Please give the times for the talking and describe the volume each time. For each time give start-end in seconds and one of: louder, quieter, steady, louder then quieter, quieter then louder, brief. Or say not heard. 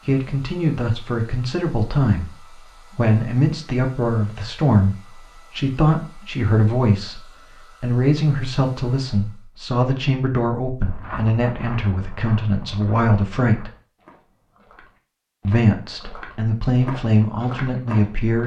0.1-13.7 steady
15.4-18.4 brief.